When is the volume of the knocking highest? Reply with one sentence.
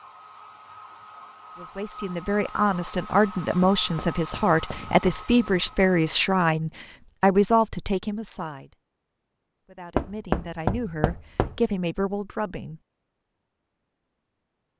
The loudest moment of the knocking is at 10 seconds.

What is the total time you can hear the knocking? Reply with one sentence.
The knocking can be heard for 3 seconds in total.